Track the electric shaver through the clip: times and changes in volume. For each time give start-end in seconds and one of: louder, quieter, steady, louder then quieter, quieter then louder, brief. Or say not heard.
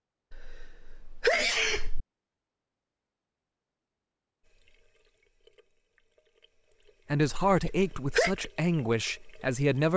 not heard.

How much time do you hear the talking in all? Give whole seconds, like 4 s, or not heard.
3 s.